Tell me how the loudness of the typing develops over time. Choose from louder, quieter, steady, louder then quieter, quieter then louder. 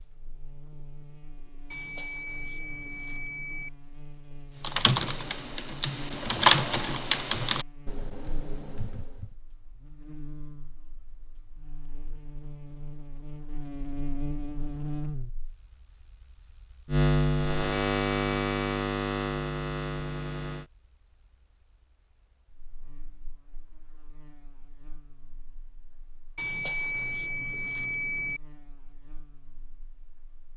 louder then quieter.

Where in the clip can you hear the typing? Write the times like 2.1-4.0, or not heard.
4.6-9.3.